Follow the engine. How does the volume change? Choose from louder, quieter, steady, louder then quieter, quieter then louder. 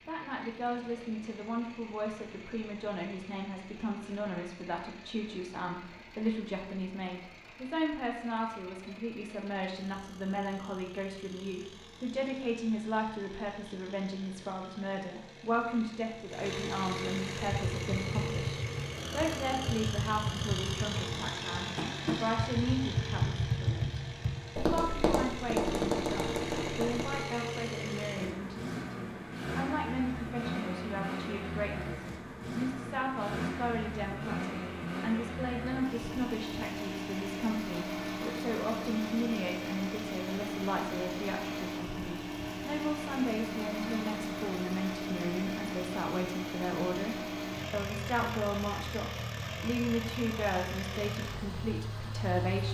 louder.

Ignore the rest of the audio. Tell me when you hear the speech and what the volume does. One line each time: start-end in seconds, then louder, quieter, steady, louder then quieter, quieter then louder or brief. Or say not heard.
0.1-52.6 steady.